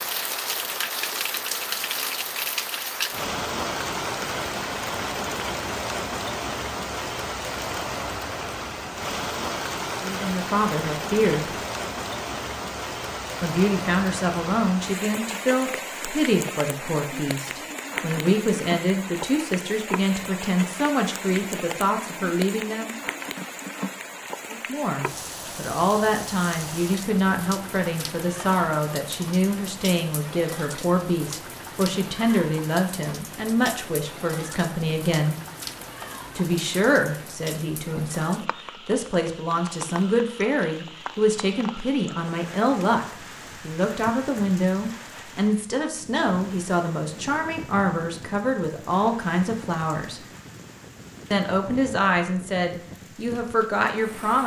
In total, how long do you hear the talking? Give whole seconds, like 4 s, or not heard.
39 s.